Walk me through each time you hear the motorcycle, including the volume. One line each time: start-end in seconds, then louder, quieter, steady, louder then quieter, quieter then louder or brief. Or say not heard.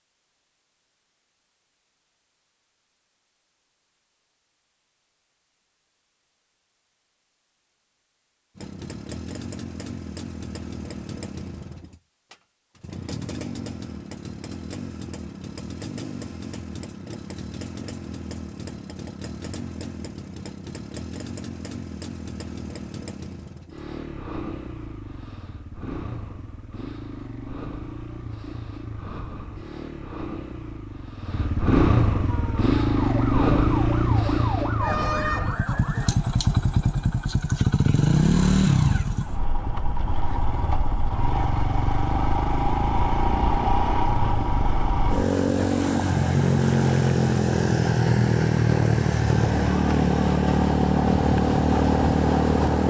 8.6-52.8 louder.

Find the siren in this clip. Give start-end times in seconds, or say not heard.
32.2-36.1.